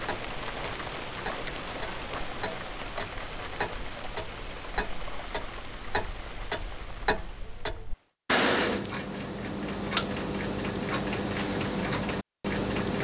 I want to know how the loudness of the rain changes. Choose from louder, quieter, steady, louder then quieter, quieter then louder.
quieter.